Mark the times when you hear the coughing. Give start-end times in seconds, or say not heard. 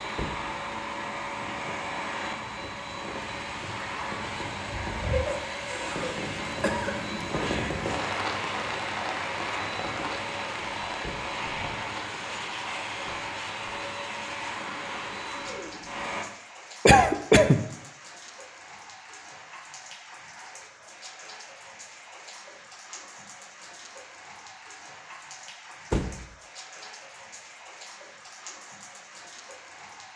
5.0-7.0, 16.9-17.6.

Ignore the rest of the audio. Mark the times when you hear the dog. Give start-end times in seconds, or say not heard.
not heard.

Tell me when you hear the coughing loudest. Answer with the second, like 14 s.
17 s.